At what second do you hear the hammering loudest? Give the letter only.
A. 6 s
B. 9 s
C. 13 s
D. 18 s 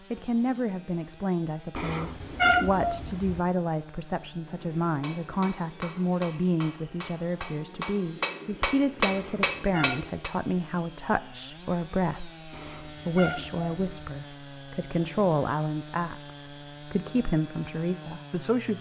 B.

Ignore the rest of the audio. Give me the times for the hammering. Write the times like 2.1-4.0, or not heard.
4.5-10.3.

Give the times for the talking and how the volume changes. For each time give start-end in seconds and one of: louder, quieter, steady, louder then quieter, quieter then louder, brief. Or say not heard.
0.1-18.7 steady.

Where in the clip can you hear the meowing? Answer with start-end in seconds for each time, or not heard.
1.8-3.4, 9.1-10.0, 12.5-14.0.